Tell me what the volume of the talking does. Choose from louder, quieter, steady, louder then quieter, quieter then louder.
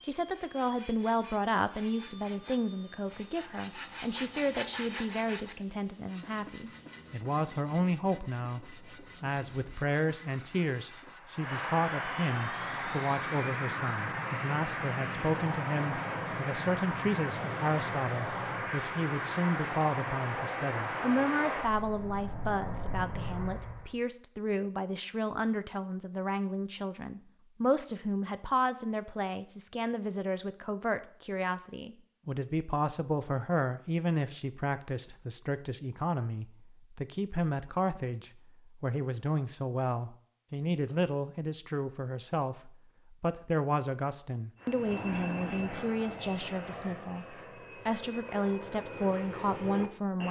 steady.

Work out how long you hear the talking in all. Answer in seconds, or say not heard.
50 s.